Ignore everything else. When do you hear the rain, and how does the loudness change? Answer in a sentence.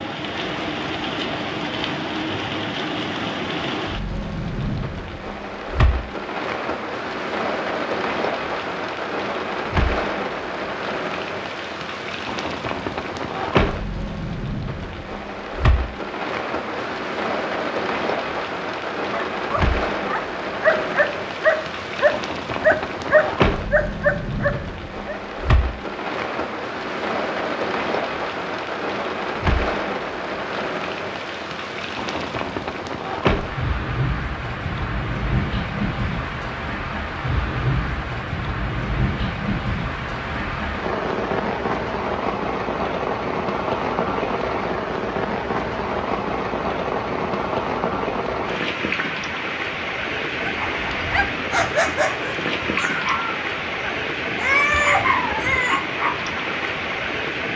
You can hear the rain from 0.0 to 57.5 s, at a steady volume.